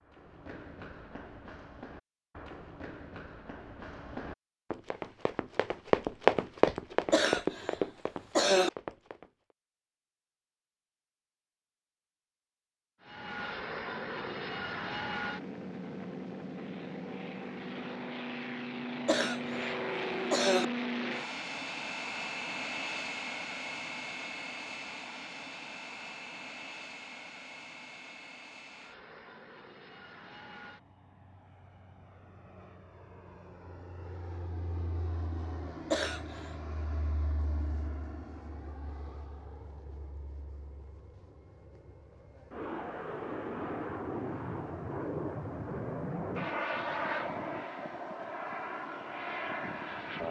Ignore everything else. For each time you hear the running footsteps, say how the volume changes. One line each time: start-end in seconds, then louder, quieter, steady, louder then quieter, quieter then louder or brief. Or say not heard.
0.0-9.3 louder then quieter.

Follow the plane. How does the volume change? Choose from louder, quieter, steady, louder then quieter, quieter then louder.
quieter then louder.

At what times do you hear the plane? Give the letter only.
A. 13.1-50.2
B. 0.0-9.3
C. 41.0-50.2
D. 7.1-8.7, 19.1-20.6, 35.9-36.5
A.